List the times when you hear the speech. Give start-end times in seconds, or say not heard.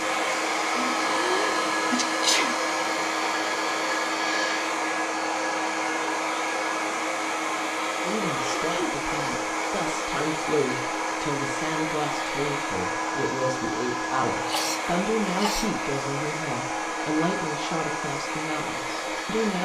8.0-19.6.